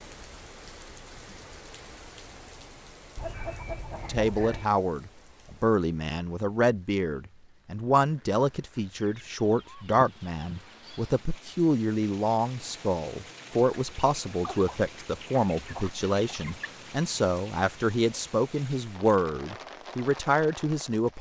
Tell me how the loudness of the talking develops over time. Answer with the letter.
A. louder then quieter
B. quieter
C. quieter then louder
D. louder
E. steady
E.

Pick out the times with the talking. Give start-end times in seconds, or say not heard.
4.0-21.1.